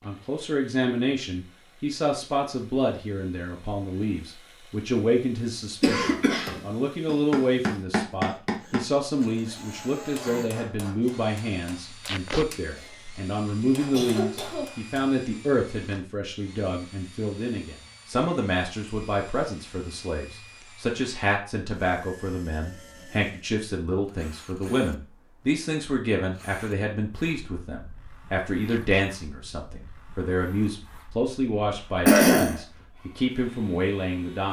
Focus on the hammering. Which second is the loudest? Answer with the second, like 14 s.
8 s.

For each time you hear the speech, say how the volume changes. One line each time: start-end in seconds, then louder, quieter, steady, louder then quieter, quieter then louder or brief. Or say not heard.
0.0-34.4 steady.